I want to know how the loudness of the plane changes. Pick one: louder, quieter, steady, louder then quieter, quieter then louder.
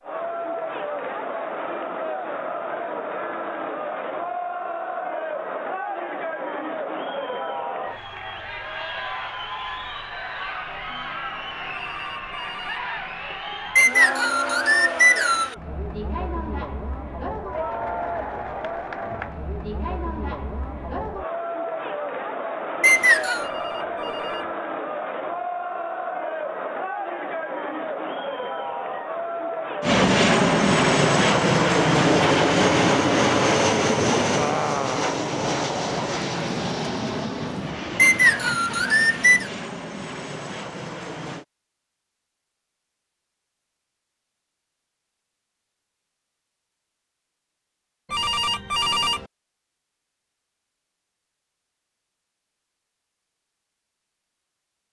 quieter.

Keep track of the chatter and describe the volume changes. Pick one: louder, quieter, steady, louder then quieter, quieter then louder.
steady.